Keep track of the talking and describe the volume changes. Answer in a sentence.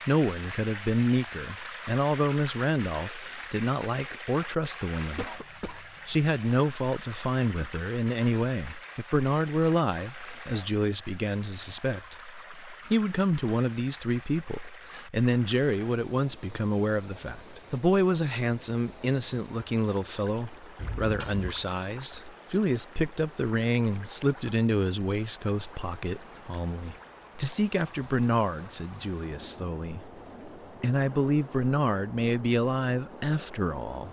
The loudness of the talking stays about the same.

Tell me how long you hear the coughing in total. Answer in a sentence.
The coughing can be heard for 2 seconds in total.